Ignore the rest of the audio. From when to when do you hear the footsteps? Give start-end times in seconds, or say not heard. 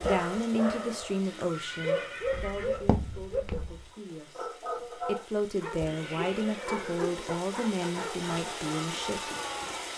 2.2-3.9.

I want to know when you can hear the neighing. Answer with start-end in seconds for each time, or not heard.
1.1-2.8, 5.8-7.3.